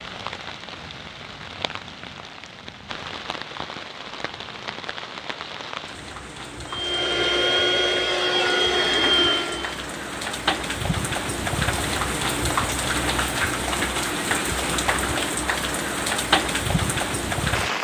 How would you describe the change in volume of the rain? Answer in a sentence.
The volume of the rain goes up.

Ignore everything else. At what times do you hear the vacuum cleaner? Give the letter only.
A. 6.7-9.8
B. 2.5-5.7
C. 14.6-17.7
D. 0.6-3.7
A.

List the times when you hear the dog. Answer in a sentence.
You can't hear the dog here.